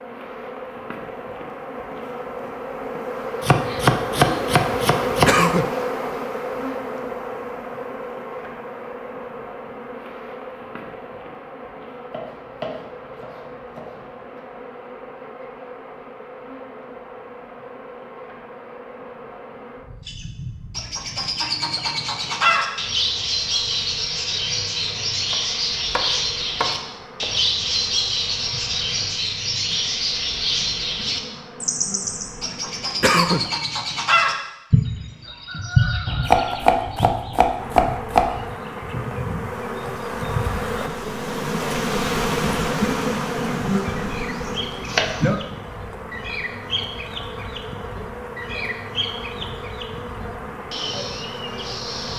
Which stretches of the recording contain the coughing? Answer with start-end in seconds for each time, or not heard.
5.2-5.8, 33.0-33.5.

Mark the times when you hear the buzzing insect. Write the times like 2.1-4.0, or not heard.
0.0-33.0, 37.5-52.1.